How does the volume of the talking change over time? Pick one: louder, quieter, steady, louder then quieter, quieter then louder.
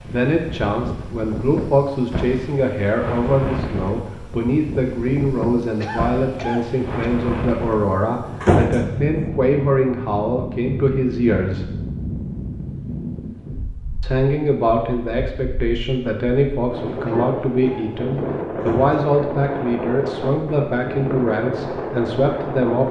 steady.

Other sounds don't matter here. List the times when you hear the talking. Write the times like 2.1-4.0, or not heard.
0.0-11.8, 14.0-22.8.